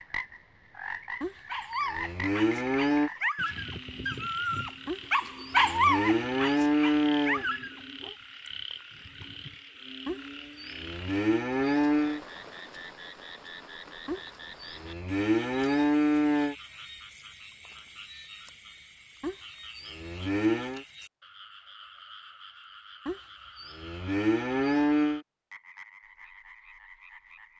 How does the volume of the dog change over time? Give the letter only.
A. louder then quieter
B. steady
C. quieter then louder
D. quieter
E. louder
A.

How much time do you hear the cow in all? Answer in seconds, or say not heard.
13 s.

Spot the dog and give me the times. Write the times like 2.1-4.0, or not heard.
1.4-8.2.